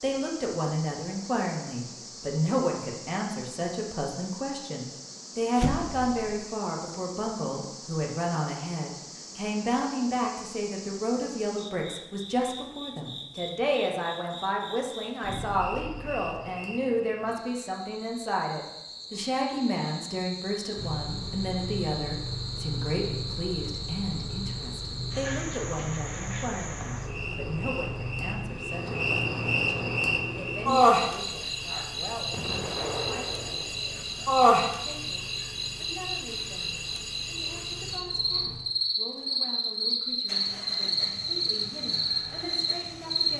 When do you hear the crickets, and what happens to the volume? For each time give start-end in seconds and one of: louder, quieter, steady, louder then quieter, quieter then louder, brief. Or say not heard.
0.0-43.3 louder.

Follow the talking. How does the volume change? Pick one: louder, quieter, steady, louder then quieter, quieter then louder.
quieter.